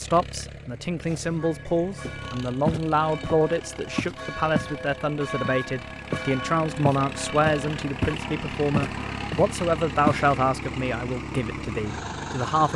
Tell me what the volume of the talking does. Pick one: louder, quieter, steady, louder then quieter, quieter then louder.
steady.